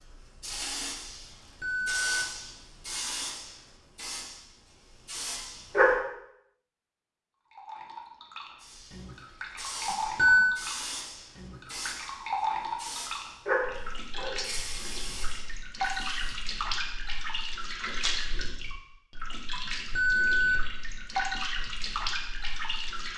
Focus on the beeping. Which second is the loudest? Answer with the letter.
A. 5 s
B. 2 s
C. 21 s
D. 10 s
D.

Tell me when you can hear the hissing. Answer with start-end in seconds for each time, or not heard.
0.4-6.0, 8.6-16.4.